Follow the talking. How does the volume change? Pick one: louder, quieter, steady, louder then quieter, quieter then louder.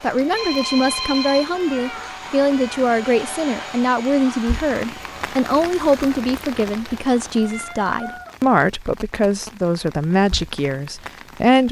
steady.